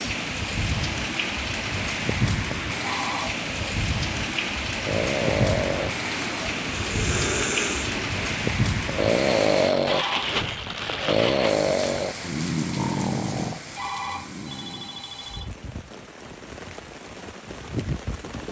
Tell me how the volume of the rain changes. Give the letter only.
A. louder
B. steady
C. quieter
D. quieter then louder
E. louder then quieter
C.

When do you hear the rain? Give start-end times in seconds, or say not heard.
0.0-18.4.